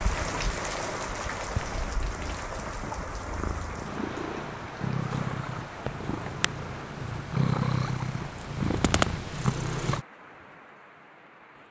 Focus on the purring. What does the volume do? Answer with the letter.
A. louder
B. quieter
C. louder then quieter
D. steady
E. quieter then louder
A.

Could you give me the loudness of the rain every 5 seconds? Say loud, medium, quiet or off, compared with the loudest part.
loud, medium, quiet.